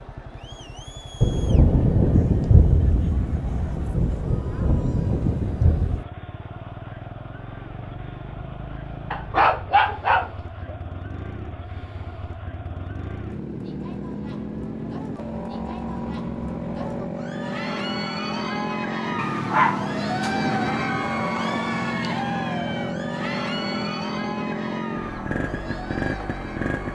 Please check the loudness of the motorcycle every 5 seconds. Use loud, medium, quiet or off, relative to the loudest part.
quiet, medium, medium, loud, loud, loud.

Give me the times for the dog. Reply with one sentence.
You can hear the dog from 9.1 to 10.8 s and from 19.1 to 20.4 s.